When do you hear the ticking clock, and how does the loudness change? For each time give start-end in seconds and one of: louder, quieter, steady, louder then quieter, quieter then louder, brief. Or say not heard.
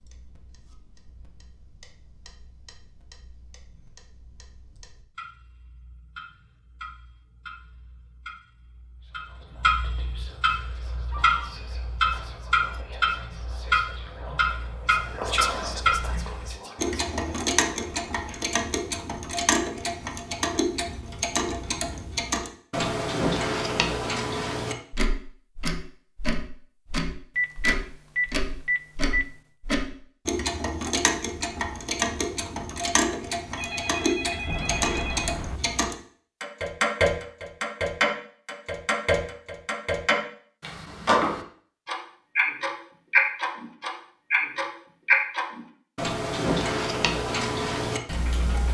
0.0-48.6 louder.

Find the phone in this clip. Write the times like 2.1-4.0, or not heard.
10.9-11.6, 27.4-29.2, 33.5-35.6.